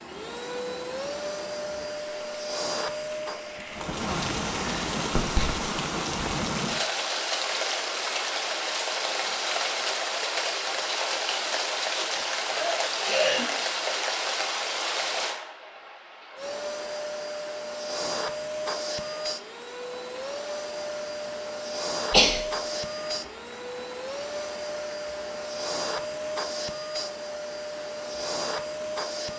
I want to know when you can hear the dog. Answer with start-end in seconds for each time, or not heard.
not heard.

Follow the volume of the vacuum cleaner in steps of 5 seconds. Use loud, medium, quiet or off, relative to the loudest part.
loud, off, off, loud, loud, loud.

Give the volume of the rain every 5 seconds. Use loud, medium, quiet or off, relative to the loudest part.
medium, loud, loud, medium, quiet, quiet.